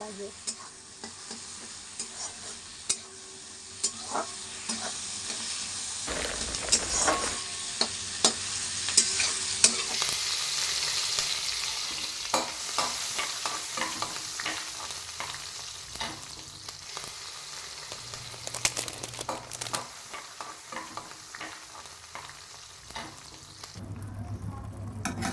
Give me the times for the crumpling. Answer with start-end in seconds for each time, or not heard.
6.0-7.4, 17.9-19.9.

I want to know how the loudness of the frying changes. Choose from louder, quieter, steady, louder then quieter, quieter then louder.
louder then quieter.